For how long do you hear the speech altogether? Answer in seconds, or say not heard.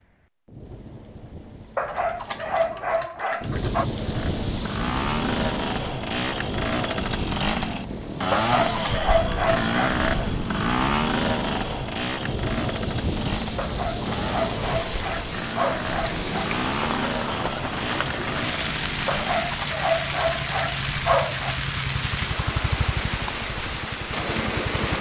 not heard.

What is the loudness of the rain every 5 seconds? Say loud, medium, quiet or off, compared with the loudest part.
medium, medium, loud, loud, loud.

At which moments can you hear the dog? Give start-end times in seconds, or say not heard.
1.8-3.9, 8.3-9.8, 13.6-16.3, 19.1-21.6.